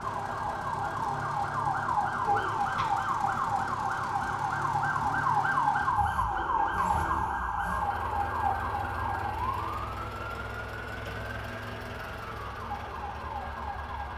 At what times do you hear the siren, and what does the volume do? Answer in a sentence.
The siren can be heard from 0.0 to 14.1 s, getting quieter.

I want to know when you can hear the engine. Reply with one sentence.
The engine can be heard from 0.0 to 14.1 s.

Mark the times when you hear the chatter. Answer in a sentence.
You can't hear the chatter here.